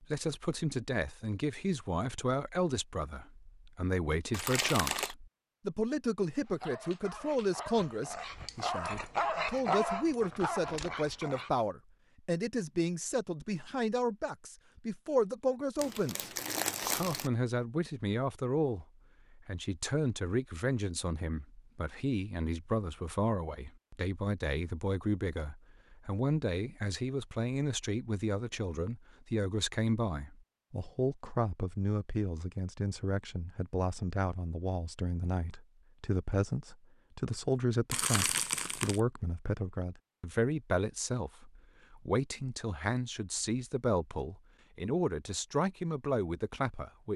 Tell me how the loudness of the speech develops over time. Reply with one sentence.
The volume of the speech stays about the same.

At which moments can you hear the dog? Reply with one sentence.
The dog can be heard from 6.4 to 11.5 s.